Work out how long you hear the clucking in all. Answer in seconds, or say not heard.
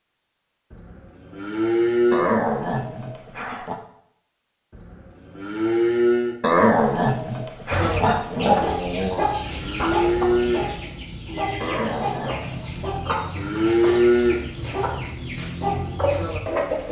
9 s.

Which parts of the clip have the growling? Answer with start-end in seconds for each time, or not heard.
2.1-3.8, 6.4-9.2, 11.6-12.7.